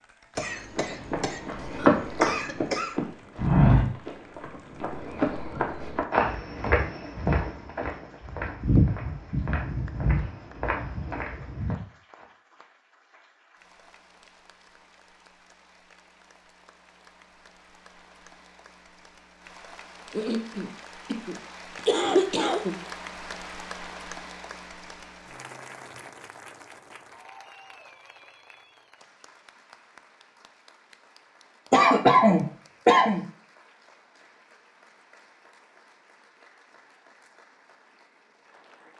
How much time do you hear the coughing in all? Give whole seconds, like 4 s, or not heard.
7 s.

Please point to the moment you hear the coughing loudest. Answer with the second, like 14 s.
32 s.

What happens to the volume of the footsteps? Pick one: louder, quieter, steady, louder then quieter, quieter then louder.
quieter.